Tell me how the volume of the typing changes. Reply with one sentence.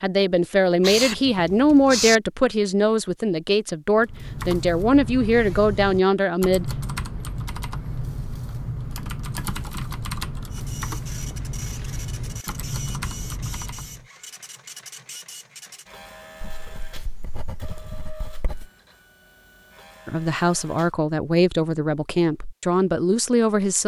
The loudness of the typing stays about the same.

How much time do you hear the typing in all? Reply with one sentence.
The typing can be heard for 10 seconds in total.